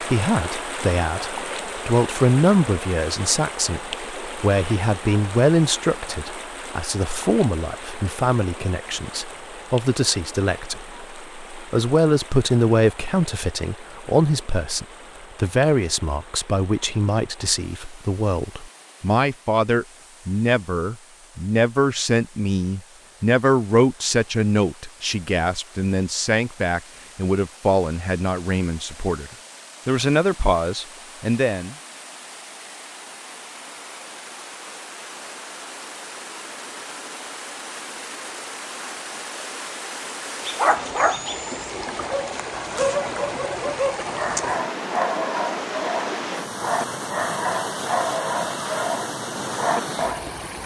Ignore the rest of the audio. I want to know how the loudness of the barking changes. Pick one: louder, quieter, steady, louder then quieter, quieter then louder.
steady.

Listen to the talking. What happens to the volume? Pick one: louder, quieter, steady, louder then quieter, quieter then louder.
steady.